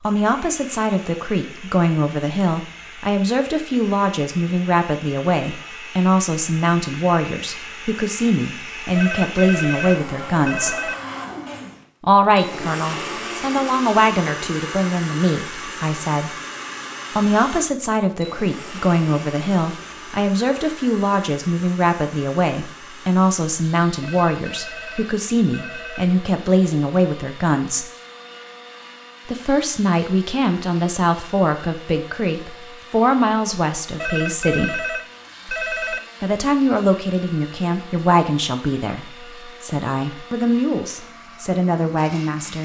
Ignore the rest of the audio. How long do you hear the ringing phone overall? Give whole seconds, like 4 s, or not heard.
6 s.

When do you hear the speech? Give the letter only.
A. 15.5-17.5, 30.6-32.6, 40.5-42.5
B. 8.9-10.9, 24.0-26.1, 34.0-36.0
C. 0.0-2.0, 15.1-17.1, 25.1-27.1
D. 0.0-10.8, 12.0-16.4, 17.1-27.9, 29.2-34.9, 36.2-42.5
D.